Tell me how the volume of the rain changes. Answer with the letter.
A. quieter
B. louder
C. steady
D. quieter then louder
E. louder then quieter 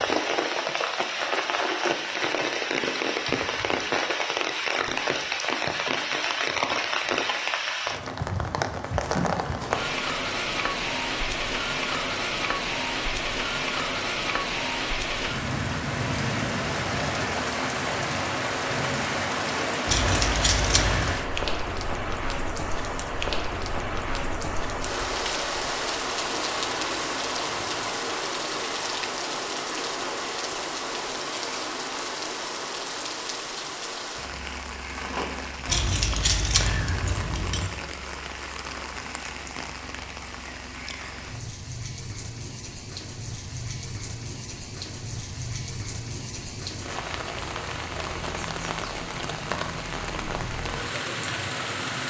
A.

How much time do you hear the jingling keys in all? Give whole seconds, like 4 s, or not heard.
3 s.